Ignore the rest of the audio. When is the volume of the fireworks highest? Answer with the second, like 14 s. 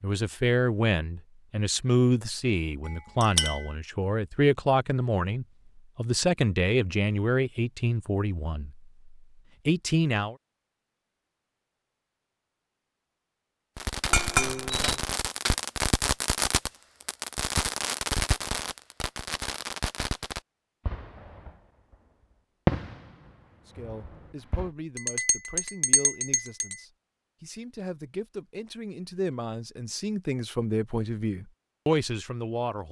23 s.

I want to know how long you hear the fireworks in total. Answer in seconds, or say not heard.
10 s.